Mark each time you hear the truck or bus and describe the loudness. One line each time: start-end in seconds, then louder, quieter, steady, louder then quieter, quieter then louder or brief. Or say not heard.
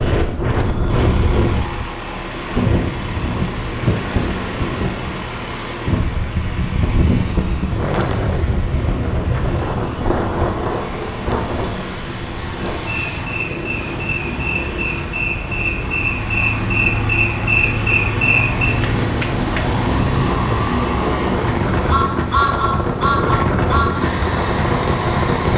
0.1-25.5 louder.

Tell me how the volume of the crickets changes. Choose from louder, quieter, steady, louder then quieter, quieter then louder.
louder then quieter.